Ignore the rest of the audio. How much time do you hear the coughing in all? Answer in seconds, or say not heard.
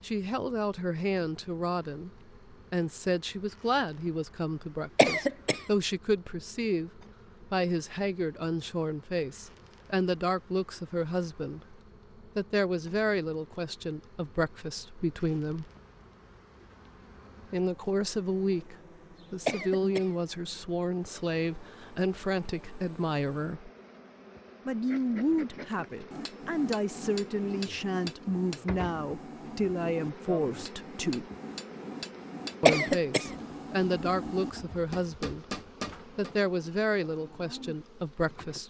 2 s.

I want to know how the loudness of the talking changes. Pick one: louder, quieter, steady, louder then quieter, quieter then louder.
steady.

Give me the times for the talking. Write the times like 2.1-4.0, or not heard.
0.0-15.7, 17.5-23.7, 24.6-31.3, 32.6-38.6.